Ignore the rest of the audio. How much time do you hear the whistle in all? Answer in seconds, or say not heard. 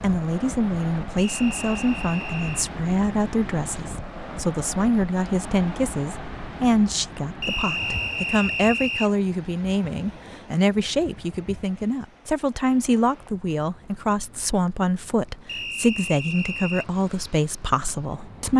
5 s.